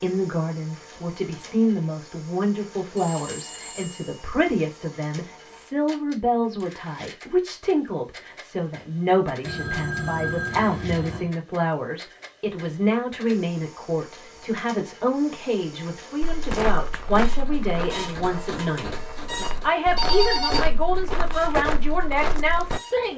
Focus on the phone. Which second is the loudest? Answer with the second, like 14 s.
20 s.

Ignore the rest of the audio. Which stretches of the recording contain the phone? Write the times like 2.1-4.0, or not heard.
3.0-4.2, 9.4-11.3, 19.9-20.7.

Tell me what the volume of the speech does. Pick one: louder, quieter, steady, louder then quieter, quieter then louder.
steady.